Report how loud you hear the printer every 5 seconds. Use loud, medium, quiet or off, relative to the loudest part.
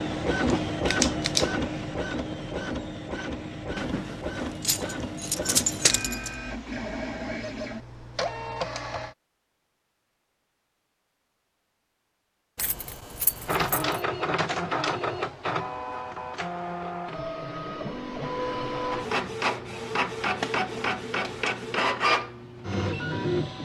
loud, medium, loud, loud, loud.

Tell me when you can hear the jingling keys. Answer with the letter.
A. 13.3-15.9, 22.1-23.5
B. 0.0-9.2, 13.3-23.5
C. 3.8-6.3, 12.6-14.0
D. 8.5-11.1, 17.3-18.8
C.